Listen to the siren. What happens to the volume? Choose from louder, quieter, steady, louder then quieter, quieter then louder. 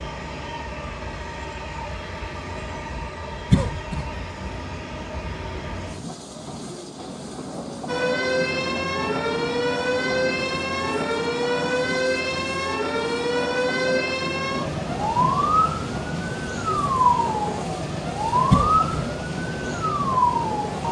steady.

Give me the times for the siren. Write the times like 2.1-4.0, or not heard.
7.8-20.8.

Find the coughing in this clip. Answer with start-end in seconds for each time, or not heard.
3.5-4.0, 18.5-19.1.